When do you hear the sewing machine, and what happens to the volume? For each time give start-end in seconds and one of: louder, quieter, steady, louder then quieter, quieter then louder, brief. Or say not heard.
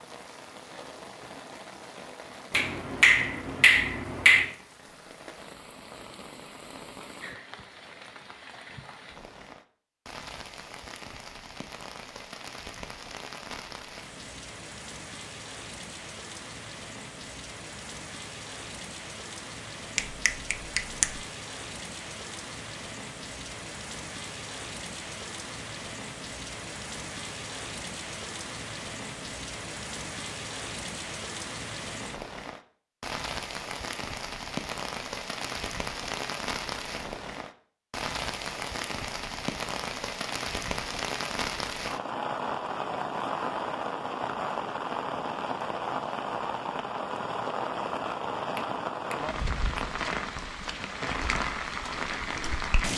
not heard.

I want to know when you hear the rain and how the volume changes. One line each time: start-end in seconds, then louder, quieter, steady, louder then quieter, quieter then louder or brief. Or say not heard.
0.0-52.9 louder.